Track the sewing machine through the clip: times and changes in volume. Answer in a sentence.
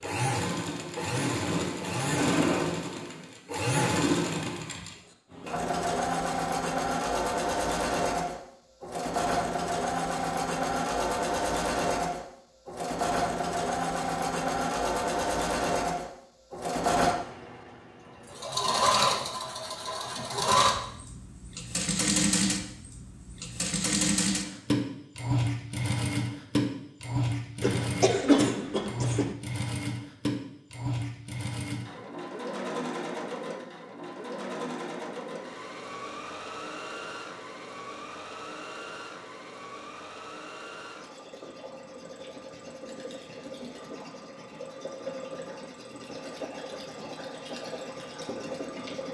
You can hear the sewing machine from 0.0 to 49.1 s, getting quieter.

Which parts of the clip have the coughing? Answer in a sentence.
You can hear the coughing from 27.6 to 29.4 s.